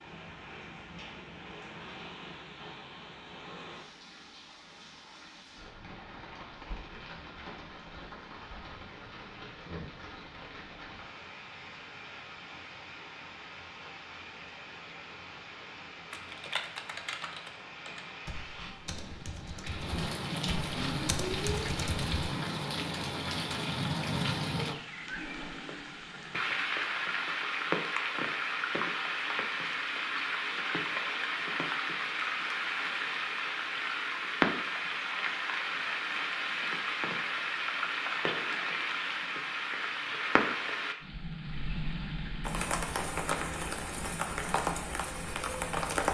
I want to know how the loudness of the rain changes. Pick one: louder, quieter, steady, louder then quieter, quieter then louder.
louder.